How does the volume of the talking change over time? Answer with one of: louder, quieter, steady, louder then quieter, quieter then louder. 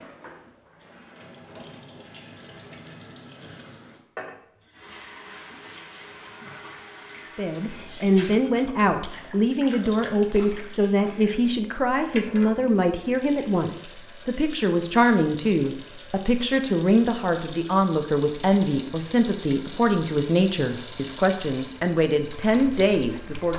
steady.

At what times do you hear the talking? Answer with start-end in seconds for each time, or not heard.
7.3-23.5.